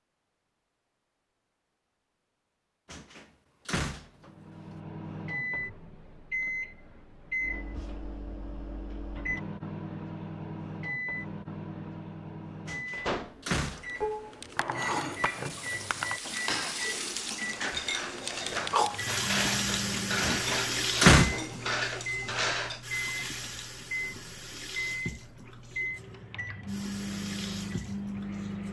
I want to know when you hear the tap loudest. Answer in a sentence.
The loudest moment of the tap is at 19 seconds.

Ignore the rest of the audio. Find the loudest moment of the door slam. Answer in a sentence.
The loudest moment of the door slam is at 21 seconds.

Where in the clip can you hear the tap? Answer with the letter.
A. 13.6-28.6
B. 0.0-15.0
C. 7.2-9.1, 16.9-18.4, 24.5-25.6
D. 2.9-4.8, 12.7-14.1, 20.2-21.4
A.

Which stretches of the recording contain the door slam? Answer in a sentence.
You can hear the door slam from 2.9 to 4.8 s, from 12.7 to 14.1 s and from 20.2 to 21.4 s.